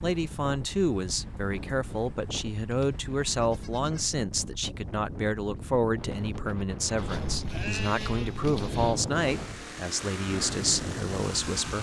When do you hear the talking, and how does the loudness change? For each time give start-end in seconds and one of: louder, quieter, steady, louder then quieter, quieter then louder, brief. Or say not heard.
0.0-11.7 steady.